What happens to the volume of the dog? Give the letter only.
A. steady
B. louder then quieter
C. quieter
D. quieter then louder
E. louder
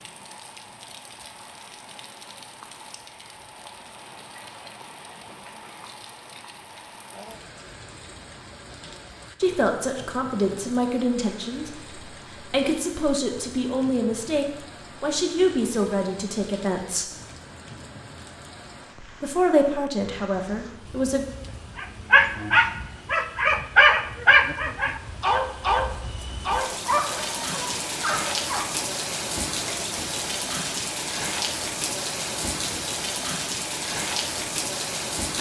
C.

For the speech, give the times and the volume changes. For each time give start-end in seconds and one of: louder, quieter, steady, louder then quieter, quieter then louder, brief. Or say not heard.
9.4-17.1 quieter then louder
19.2-21.2 brief.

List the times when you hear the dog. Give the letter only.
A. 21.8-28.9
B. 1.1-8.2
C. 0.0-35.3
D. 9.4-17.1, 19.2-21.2
A.